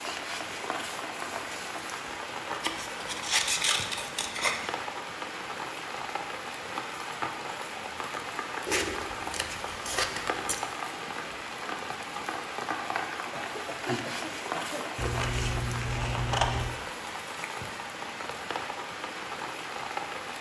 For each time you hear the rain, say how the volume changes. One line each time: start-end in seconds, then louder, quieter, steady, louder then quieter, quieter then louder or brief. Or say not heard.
0.0-20.3 steady.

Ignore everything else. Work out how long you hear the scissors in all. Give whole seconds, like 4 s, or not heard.
6 s.